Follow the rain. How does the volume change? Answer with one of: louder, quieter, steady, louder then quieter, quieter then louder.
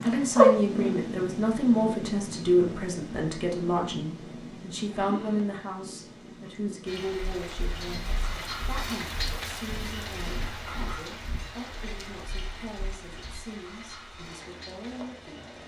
quieter.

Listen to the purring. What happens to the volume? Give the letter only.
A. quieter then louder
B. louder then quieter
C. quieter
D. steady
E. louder
C.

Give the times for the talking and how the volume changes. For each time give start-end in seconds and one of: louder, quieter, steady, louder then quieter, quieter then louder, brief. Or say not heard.
0.0-15.6 quieter.